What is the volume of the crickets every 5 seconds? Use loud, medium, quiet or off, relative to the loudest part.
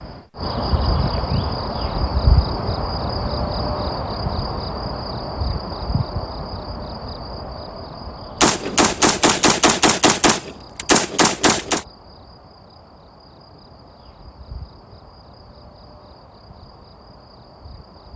loud, medium, quiet, quiet.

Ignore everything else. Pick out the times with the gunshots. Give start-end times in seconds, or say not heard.
8.4-11.8.